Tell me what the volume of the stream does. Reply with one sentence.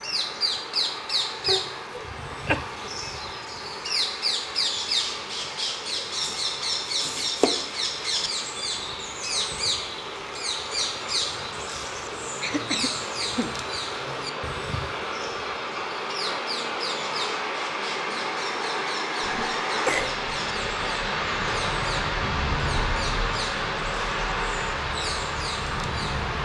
The volume of the stream goes up.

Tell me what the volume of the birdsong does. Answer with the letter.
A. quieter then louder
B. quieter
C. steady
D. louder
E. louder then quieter
B.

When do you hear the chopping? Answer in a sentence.
The chopping can be heard from 6.2 to 7.5 s.